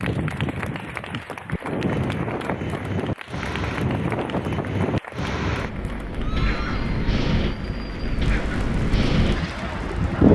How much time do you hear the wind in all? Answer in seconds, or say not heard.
10 s.